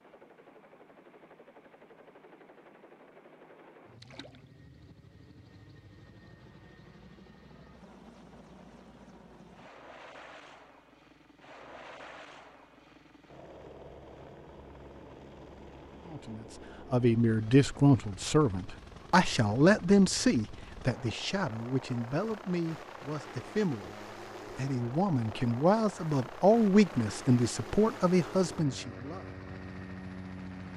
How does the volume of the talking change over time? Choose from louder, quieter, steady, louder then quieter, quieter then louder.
quieter then louder.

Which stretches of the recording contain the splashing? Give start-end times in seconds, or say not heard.
4.0-4.5.